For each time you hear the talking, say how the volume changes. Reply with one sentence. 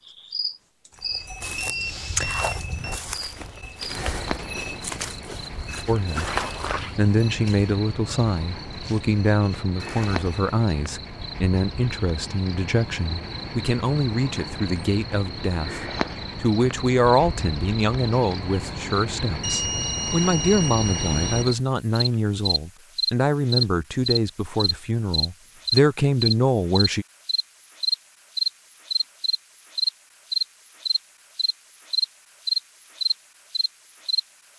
You can hear the talking briefly from 5.8 to 6.3 s; and from 7.0 to 27.1 s, at a steady volume.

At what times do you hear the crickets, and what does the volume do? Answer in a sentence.
You can hear the crickets from 0.1 to 34.2 s, getting louder.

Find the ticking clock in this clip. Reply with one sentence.
The ticking clock can't be heard in this clip.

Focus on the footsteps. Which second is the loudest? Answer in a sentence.
The volume of the footsteps peaks at 6 seconds.